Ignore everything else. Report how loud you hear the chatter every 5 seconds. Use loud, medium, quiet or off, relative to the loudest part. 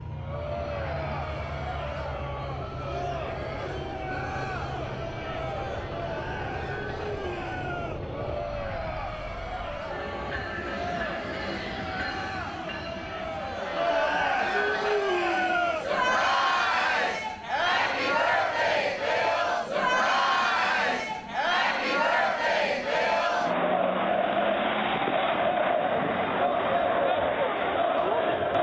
medium, medium, medium, loud, loud, loud.